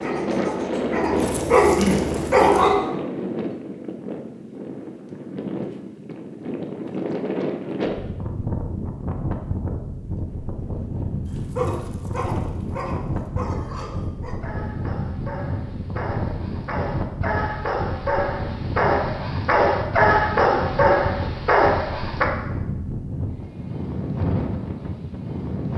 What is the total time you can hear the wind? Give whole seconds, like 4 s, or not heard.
26 s.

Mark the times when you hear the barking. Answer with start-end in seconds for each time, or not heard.
0.0-2.8, 11.2-22.2.